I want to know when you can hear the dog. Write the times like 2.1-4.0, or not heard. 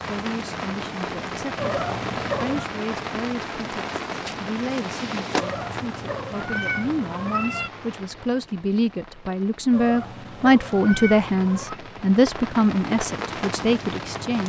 not heard.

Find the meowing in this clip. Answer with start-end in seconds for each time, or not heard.
1.6-2.6, 5.3-7.7, 9.7-11.8.